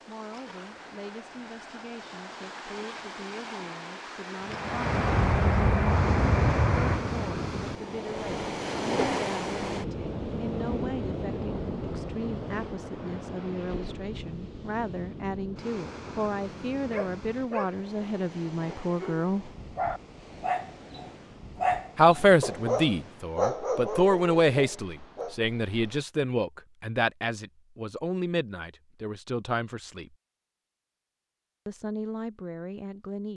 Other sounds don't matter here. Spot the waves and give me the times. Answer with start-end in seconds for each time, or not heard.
0.0-26.1.